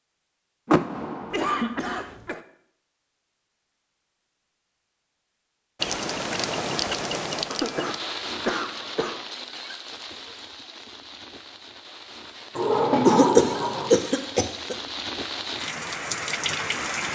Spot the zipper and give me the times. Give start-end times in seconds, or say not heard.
not heard.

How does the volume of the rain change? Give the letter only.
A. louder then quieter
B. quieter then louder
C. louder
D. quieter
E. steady
B.